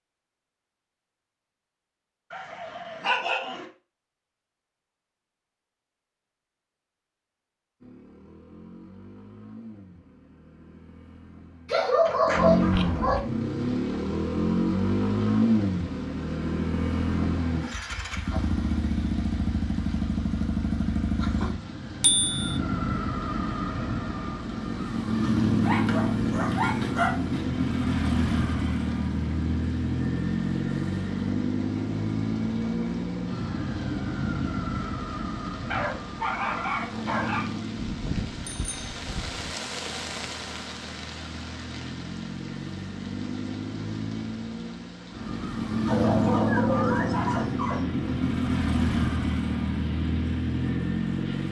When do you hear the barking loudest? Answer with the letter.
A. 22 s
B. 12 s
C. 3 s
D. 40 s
B.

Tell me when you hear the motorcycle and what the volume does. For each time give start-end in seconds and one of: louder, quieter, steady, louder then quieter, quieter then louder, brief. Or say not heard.
7.8-51.4 quieter then louder.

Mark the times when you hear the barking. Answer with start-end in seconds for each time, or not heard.
2.3-3.6, 11.7-13.2, 25.6-27.4, 35.6-37.5, 45.9-47.9.